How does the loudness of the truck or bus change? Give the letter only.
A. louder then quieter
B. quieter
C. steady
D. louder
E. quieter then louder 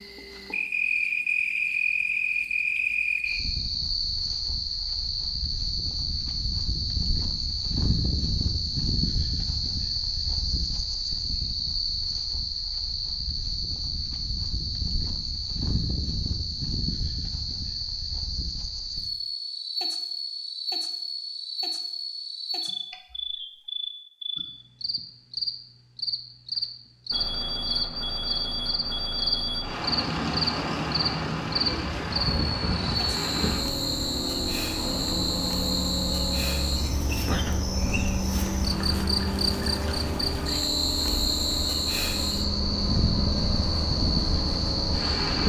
C.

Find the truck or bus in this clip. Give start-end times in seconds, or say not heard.
27.1-45.4.